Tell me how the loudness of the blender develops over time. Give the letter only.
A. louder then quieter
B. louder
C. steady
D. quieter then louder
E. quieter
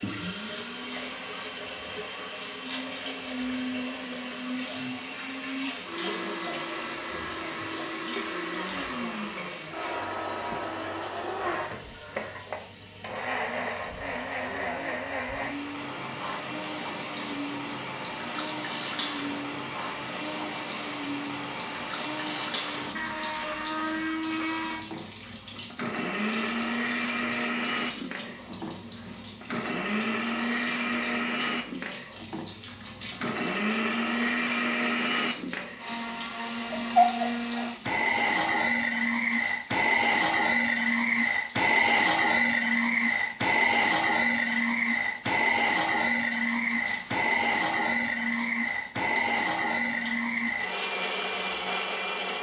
B.